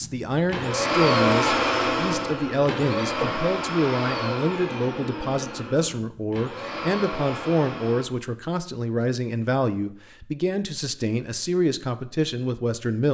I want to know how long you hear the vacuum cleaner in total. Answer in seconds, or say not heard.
8 s.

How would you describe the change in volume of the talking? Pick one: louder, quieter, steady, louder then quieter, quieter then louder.
steady.